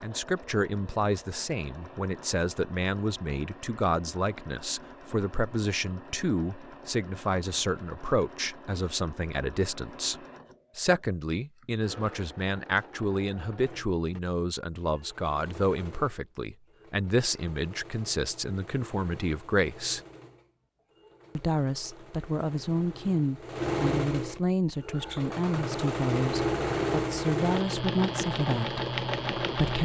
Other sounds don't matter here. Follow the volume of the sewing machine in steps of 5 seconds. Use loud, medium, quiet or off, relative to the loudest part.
quiet, quiet, quiet, quiet, medium, loud.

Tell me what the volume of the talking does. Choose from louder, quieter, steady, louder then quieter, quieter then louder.
steady.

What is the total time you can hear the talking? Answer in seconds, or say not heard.
28 s.